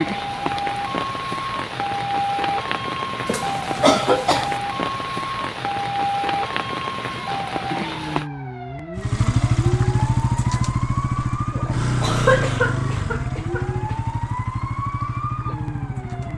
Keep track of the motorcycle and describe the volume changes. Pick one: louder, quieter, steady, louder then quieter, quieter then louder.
quieter.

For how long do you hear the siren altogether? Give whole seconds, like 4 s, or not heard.
16 s.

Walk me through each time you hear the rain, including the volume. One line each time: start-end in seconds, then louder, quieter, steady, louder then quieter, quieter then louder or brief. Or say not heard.
0.0-8.3 steady.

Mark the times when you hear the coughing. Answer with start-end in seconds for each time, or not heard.
3.2-4.6, 11.5-13.9.